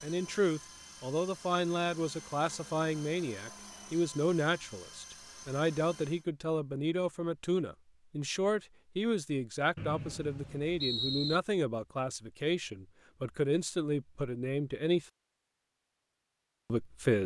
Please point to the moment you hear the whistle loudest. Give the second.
11 s.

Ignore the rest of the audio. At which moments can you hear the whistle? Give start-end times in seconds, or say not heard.
9.8-11.4.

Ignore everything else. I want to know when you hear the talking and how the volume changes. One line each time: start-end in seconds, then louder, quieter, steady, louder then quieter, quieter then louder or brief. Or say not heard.
0.0-15.1 steady
16.7-17.2 brief.